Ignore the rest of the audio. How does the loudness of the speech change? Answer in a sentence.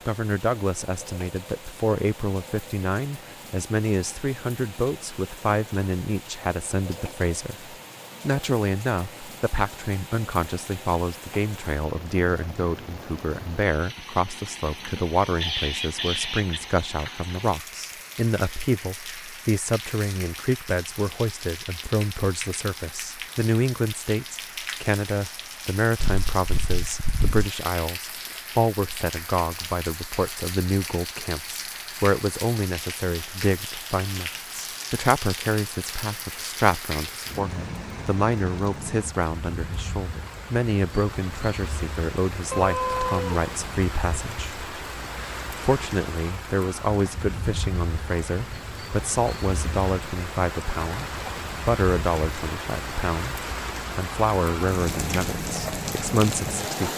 The volume of the speech stays about the same.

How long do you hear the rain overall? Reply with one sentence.
You can hear the rain for 57 seconds altogether.